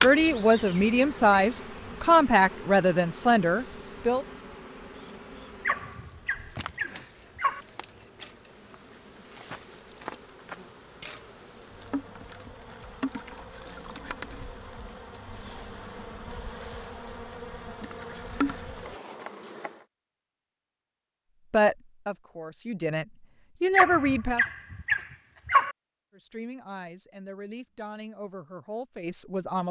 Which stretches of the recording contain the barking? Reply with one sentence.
You can hear the barking from 5.7 to 7.7 s and from 23.8 to 25.8 s.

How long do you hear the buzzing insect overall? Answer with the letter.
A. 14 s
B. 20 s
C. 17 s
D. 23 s
B.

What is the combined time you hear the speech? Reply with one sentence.
You can hear the speech for 11 seconds altogether.